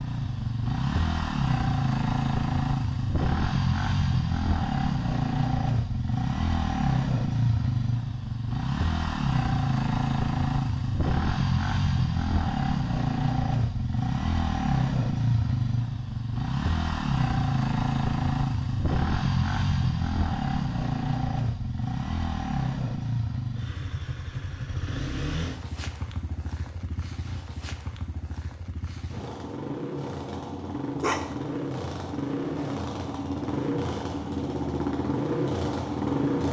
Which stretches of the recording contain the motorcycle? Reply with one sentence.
The motorcycle can be heard from 0.0 to 36.4 s.